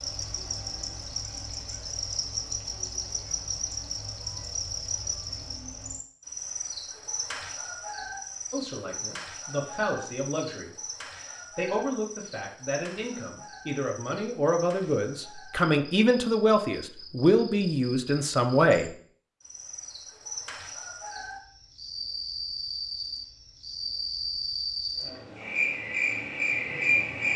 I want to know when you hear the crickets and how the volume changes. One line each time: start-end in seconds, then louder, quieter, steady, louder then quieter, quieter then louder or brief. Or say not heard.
0.0-27.3 quieter then louder.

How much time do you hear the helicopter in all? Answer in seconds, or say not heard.
not heard.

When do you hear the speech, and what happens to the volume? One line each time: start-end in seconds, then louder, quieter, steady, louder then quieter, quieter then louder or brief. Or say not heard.
8.5-18.9 louder.